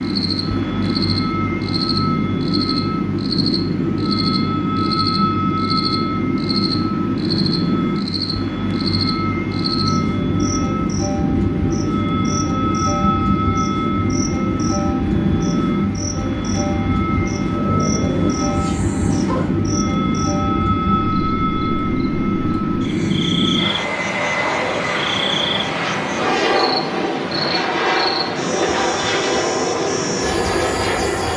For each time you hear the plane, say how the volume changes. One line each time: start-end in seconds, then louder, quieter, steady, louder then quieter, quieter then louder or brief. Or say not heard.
0.0-31.3 steady.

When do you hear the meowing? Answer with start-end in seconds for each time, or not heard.
17.5-19.6.